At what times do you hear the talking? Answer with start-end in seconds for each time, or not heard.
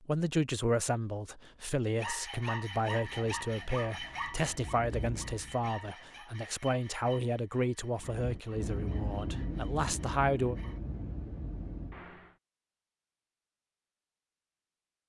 0.0-10.6.